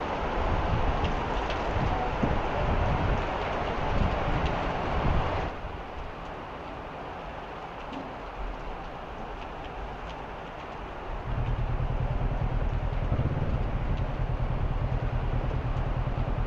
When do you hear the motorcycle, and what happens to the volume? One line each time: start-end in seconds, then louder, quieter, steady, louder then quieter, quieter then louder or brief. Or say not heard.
11.2-16.4 steady.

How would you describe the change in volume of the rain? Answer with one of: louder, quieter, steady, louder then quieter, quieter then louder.
quieter.